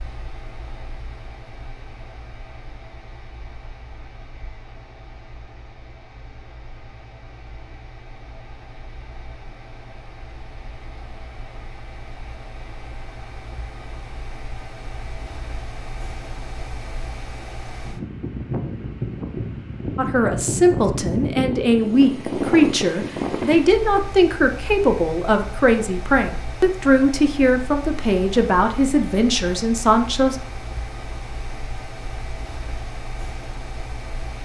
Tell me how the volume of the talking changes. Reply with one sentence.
The volume of the talking stays about the same.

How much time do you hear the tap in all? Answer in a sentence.
The tap can't be heard in this clip.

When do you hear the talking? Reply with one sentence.
The talking can be heard from 19.9 to 30.4 s.